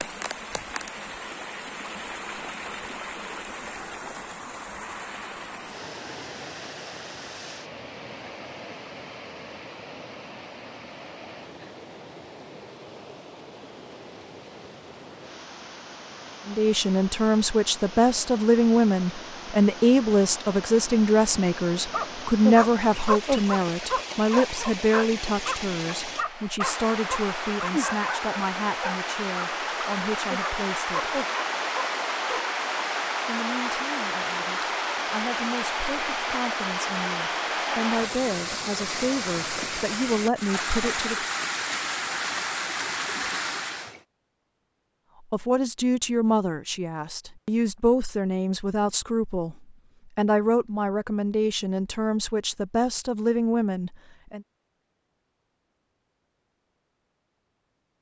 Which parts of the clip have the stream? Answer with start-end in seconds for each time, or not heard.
0.0-44.0.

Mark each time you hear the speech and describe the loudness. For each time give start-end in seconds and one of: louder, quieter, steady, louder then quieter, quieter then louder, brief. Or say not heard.
16.4-31.1 quieter
33.2-41.2 louder
45.3-54.5 steady.